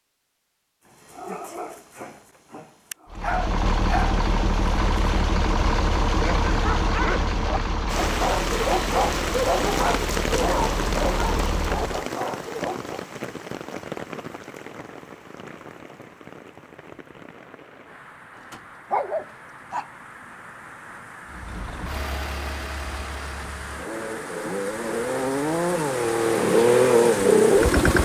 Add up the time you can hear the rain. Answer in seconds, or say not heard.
20 s.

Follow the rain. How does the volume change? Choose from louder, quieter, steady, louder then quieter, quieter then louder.
quieter then louder.